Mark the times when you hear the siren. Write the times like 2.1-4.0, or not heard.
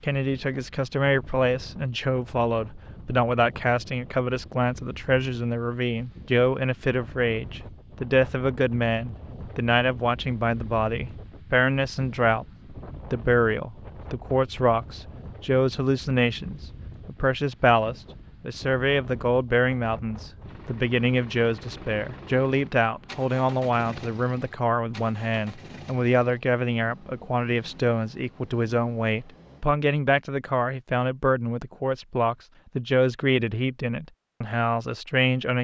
not heard.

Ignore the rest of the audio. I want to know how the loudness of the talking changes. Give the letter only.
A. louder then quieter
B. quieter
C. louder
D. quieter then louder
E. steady
E.